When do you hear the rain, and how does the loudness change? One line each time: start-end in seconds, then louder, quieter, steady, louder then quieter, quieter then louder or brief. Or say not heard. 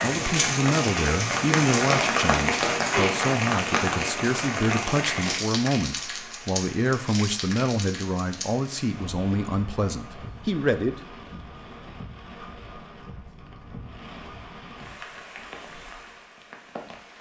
0.0-17.1 quieter.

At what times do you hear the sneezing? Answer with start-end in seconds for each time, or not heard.
2.8-3.2.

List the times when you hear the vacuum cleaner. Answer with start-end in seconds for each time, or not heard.
not heard.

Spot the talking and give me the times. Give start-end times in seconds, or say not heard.
0.0-10.9.